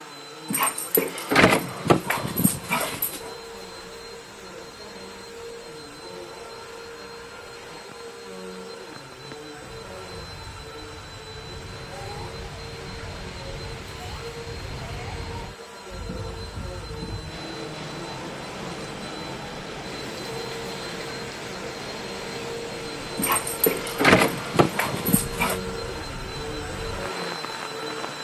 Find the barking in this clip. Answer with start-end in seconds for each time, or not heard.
0.5-3.3, 23.1-25.6.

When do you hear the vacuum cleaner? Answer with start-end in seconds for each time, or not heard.
0.0-28.1.